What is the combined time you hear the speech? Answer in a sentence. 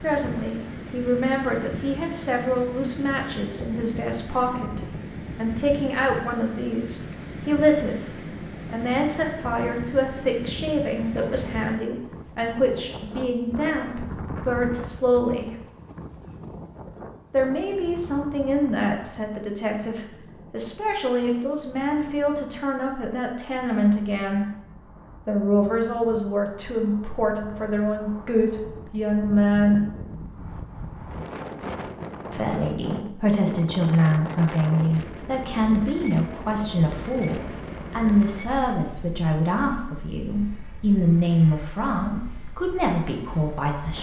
You can hear the speech for 39 seconds altogether.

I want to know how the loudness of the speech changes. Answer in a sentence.
The loudness of the speech stays about the same.